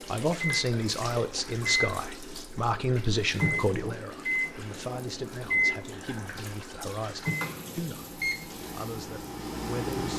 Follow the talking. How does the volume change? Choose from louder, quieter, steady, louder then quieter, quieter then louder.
quieter.